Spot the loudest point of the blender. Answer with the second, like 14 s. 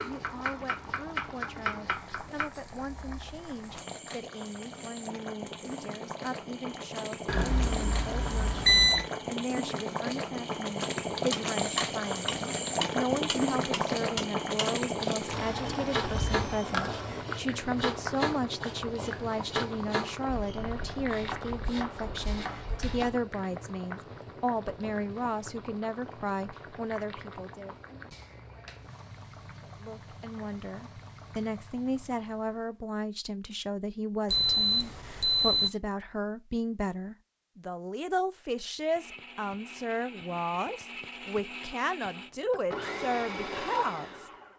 43 s.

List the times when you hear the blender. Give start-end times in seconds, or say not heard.
38.9-44.5.